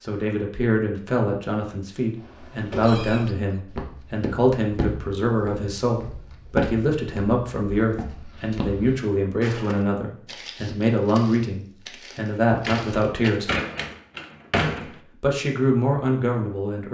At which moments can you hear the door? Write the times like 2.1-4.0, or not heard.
12.4-15.0.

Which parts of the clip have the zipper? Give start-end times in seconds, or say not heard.
not heard.